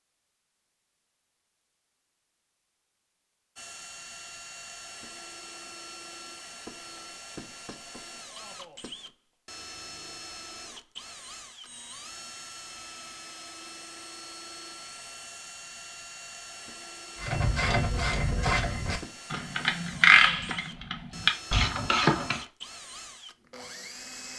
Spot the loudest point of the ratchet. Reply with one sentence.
The volume of the ratchet peaks at 20 seconds.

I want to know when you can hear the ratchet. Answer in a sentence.
You can hear the ratchet from 17.1 to 22.4 s.